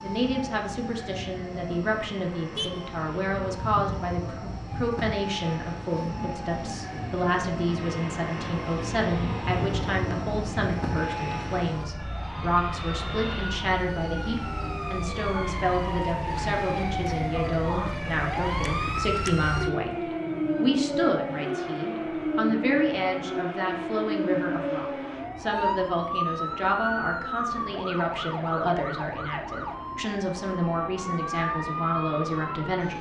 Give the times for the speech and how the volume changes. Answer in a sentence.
You can hear the speech from 0.0 to 32.9 s, at a steady volume.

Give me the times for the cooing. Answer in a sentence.
You can't hear the cooing here.